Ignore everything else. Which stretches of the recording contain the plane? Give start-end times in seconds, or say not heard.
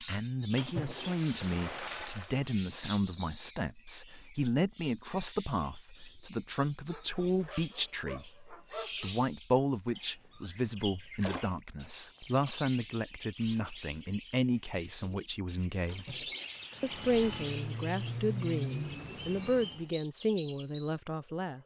16.7-19.9.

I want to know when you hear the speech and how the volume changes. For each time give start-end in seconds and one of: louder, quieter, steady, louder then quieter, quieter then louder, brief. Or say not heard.
0.0-21.6 steady.